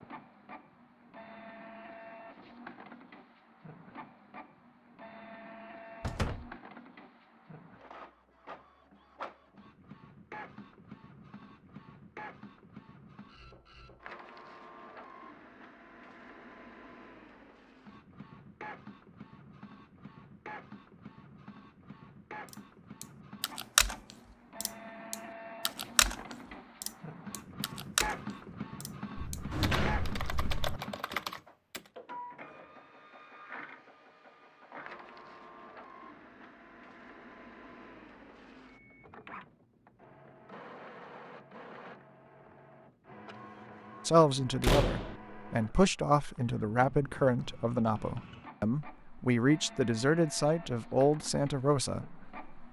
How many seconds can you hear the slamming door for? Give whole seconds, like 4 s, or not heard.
3 s.